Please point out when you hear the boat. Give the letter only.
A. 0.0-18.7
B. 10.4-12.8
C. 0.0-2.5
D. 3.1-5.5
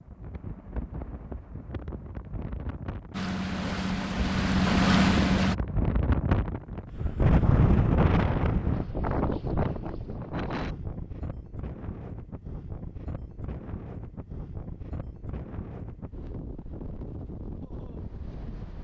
D.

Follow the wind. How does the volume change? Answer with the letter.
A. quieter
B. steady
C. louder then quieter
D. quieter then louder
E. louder
C.